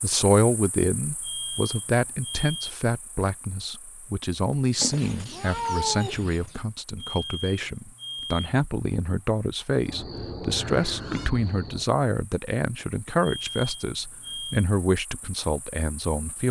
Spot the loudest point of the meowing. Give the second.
6 s.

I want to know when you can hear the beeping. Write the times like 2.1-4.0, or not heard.
1.2-2.7, 7.0-8.5, 13.2-14.7.